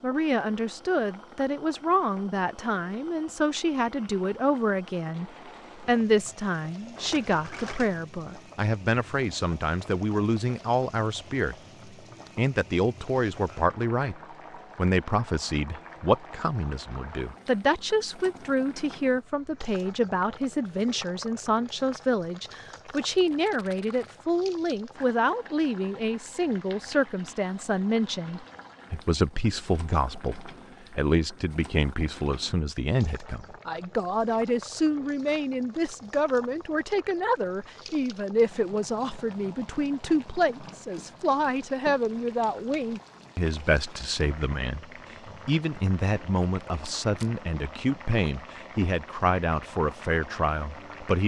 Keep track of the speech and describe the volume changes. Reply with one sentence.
The volume of the speech stays about the same.